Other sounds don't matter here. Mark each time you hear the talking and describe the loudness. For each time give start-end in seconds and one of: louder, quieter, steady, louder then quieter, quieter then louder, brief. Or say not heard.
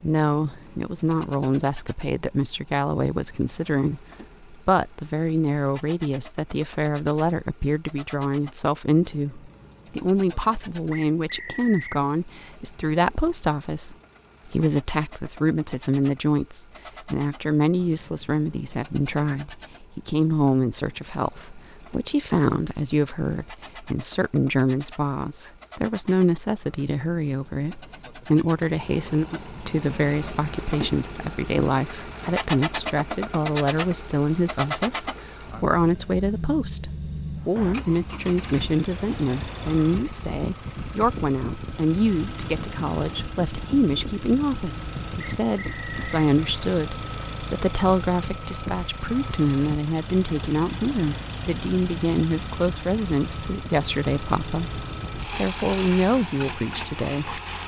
0.0-57.4 steady.